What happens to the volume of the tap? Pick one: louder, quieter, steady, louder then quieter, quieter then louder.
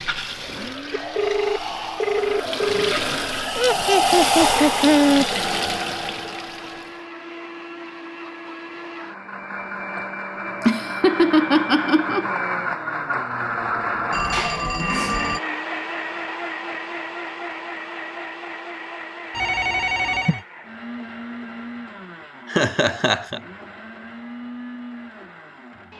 louder then quieter.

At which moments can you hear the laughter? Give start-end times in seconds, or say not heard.
3.5-5.2, 9.9-12.3, 22.4-23.4.